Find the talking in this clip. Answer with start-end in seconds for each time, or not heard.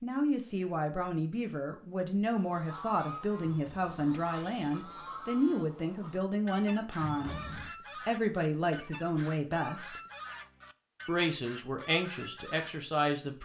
0.0-7.4, 8.1-10.0, 11.1-13.4.